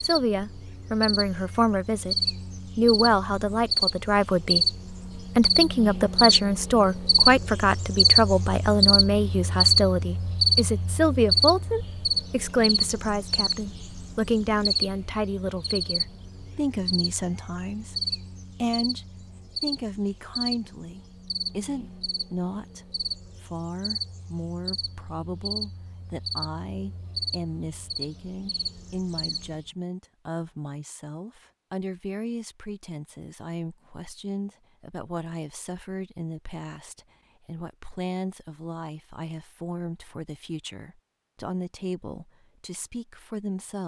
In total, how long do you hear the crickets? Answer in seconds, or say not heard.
30 s.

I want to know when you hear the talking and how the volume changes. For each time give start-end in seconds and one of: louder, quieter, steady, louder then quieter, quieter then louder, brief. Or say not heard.
0.0-2.1 brief
2.8-43.8 quieter.